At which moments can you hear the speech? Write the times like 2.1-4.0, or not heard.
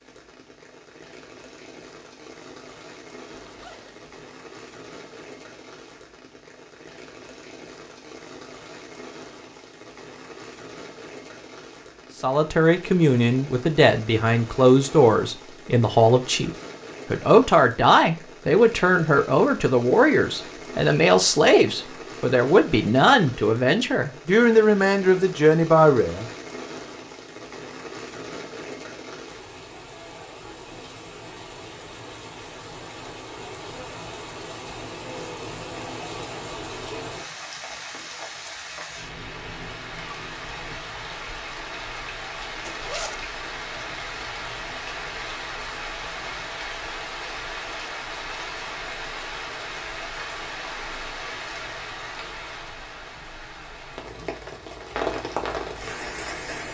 12.2-16.5, 17.1-26.2.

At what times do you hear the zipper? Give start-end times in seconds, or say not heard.
3.2-4.2, 42.6-43.2.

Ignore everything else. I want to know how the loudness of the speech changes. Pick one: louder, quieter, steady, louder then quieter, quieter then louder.
steady.